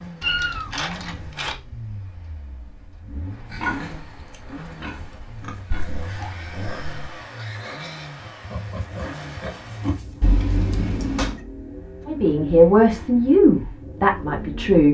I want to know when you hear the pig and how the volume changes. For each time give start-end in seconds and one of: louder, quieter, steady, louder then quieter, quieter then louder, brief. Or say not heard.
3.5-10.3 louder.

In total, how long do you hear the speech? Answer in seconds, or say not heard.
3 s.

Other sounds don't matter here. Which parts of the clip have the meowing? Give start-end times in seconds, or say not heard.
0.2-1.6, 5.7-7.2, 10.2-11.4.